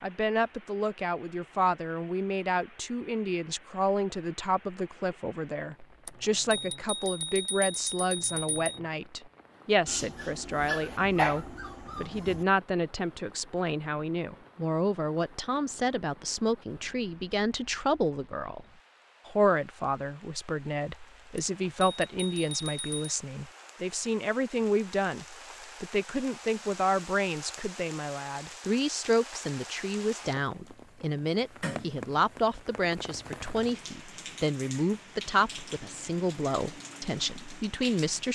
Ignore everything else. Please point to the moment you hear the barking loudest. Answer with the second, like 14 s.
11 s.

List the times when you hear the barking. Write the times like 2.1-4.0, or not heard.
9.8-12.4.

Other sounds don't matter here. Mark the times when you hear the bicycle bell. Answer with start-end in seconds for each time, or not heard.
6.0-8.8, 21.4-23.0.